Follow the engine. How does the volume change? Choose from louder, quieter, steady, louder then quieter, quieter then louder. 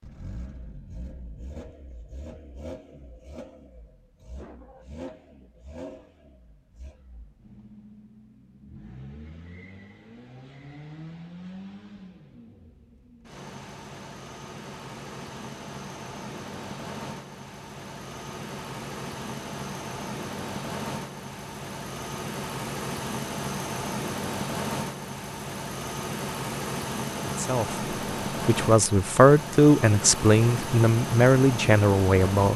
louder.